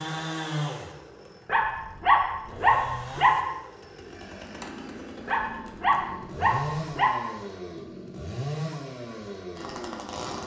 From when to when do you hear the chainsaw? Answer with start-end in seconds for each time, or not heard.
0.0-10.4.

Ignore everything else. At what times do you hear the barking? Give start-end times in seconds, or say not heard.
1.4-3.3, 5.2-7.1.